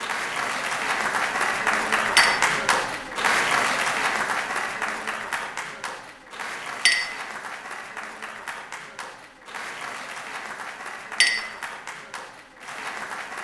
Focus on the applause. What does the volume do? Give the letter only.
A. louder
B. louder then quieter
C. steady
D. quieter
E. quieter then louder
D.